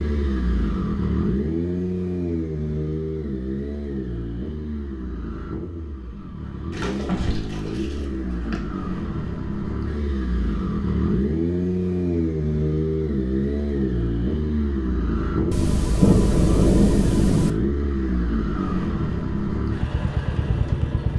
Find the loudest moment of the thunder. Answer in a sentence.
The loudest moment of the thunder is at 16 seconds.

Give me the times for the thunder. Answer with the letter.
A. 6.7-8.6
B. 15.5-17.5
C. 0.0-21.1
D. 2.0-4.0
B.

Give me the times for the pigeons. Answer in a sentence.
You can hear the pigeons from 6.7 to 8.6 s.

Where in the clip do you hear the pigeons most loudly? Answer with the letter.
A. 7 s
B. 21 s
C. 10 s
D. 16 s
A.